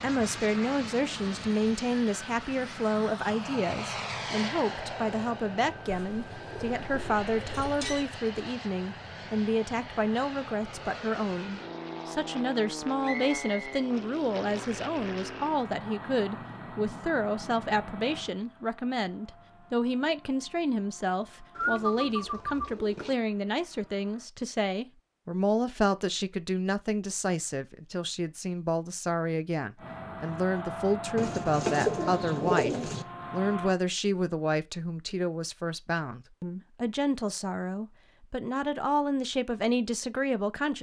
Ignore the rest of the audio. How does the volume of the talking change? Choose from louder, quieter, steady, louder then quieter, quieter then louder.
steady.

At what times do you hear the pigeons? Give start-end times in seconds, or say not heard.
6.0-8.1, 21.6-23.1, 31.1-33.0.